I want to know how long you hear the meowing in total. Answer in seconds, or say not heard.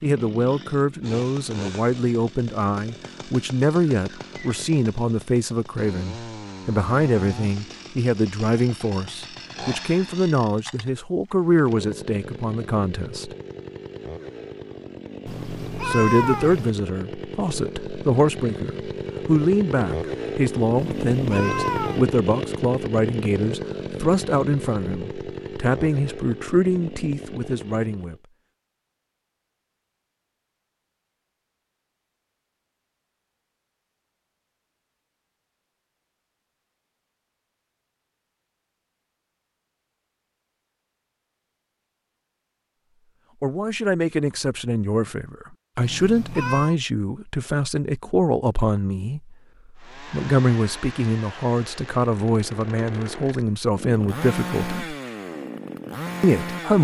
4 s.